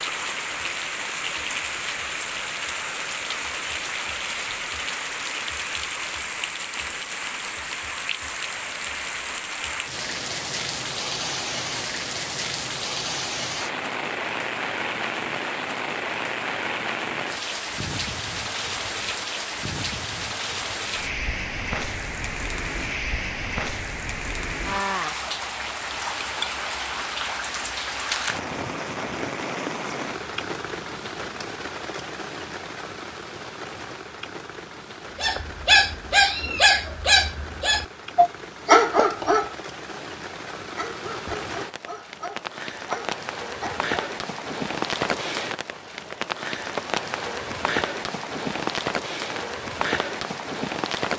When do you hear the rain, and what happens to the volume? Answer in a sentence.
You can hear the rain from 0.0 to 51.1 s, getting quieter then louder.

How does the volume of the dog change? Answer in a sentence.
The loudness of the dog goes down.